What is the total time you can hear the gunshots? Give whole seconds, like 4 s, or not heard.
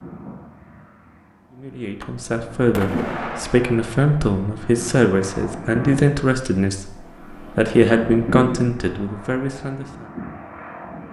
2 s.